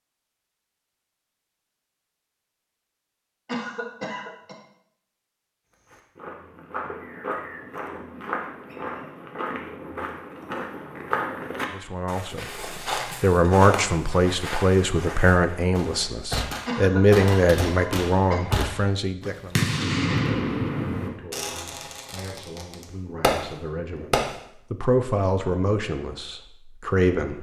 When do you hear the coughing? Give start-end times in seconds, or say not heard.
3.5-4.5, 16.6-18.4.